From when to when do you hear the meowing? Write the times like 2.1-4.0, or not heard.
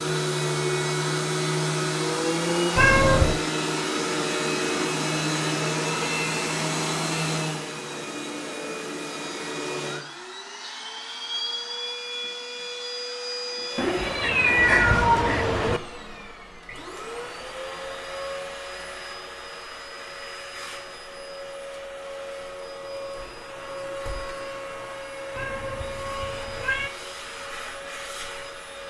2.8-3.4, 13.8-15.8, 25.4-26.9.